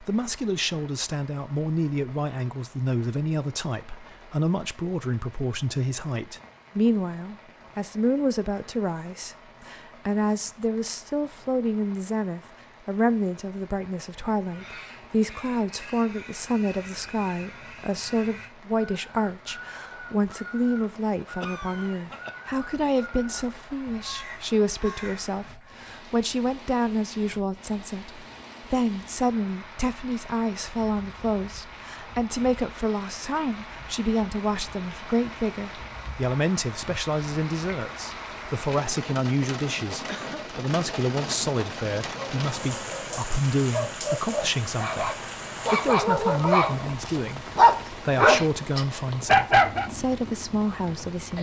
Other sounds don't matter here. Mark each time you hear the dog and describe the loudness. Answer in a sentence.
You can hear the dog from 42.2 to 49.9 s, getting louder.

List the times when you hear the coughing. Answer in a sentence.
The coughing can be heard from 21.4 to 22.4 s and from 40.0 to 40.5 s.